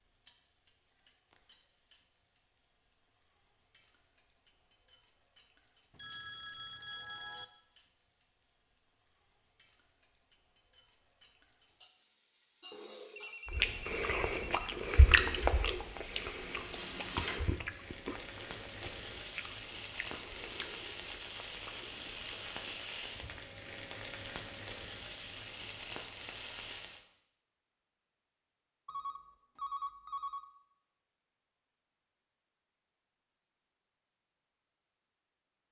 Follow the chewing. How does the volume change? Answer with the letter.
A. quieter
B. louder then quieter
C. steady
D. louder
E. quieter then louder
E.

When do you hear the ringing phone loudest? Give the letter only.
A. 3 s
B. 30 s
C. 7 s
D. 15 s
B.